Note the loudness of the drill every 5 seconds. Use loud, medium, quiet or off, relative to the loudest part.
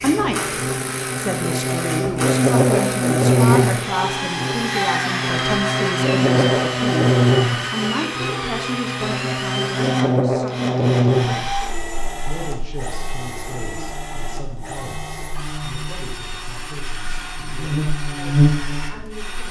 loud, loud, medium, medium.